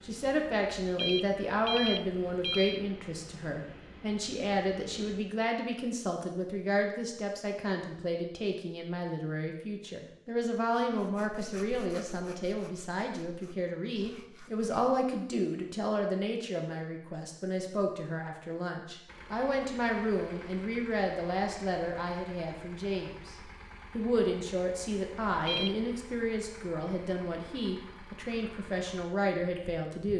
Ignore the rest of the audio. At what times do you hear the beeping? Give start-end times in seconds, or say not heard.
0.8-2.9, 25.3-25.8.